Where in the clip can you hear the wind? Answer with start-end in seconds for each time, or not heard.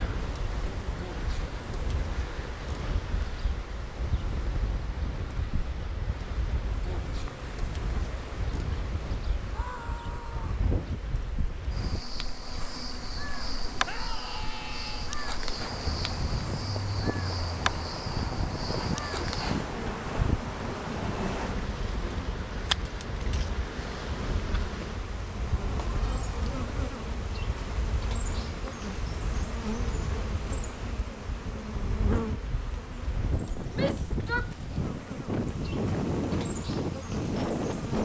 0.0-38.0.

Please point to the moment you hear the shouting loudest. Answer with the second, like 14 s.
34 s.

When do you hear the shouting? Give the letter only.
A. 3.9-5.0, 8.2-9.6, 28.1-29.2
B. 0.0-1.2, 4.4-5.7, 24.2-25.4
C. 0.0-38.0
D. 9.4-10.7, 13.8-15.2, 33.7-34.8
D.